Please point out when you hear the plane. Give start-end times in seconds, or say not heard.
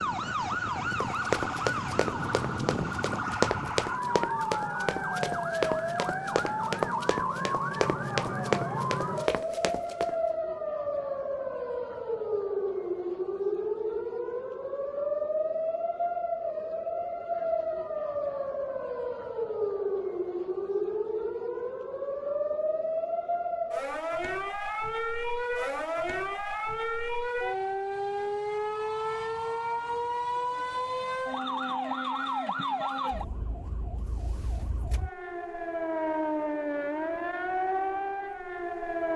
not heard.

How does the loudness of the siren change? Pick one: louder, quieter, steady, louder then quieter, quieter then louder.
steady.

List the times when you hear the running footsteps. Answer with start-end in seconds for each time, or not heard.
0.7-10.2.